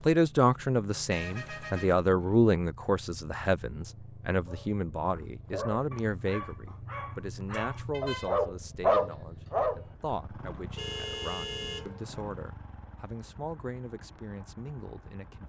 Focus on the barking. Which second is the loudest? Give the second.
9 s.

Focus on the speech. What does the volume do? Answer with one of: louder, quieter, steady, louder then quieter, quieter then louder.
quieter.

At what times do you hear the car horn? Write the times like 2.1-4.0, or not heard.
1.1-1.9, 7.9-8.3, 10.8-12.1.